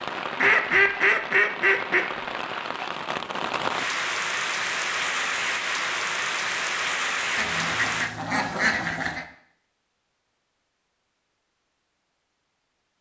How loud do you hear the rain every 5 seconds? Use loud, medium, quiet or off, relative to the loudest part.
loud, loud, off.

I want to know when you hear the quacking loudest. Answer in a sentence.
The volume of the quacking peaks at 1 second.